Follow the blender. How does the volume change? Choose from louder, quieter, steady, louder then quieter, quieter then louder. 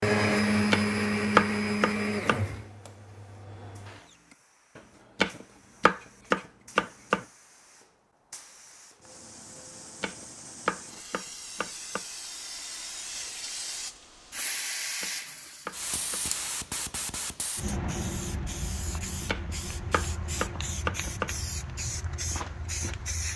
quieter.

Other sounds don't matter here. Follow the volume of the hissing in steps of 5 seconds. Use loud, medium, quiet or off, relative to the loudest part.
quiet, quiet, loud, loud, loud.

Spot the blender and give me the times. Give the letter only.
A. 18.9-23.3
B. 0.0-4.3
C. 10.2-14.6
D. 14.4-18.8
B.